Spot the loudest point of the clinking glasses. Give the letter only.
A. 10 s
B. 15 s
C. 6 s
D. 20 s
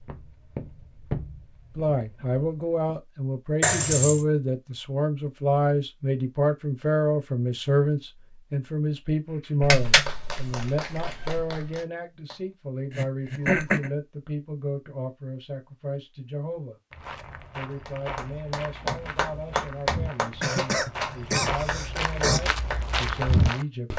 A.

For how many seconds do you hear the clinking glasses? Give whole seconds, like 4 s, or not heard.
2 s.